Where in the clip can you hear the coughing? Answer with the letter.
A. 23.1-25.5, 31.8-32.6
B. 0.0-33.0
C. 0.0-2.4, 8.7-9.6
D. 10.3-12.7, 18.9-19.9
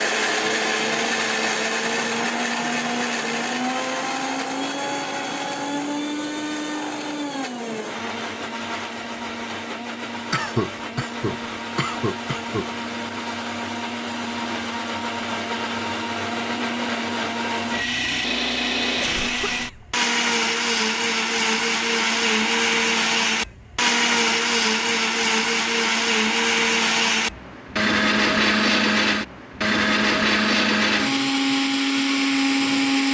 D.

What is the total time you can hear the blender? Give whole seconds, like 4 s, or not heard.
33 s.